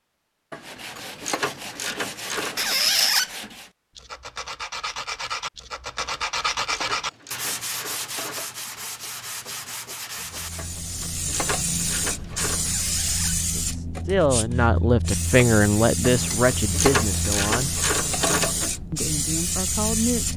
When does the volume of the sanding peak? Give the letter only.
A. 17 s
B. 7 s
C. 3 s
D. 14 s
B.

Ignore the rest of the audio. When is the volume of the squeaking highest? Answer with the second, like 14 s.
3 s.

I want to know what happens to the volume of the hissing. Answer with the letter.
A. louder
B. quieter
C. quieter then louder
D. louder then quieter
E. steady
E.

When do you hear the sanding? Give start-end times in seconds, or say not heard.
0.6-10.7.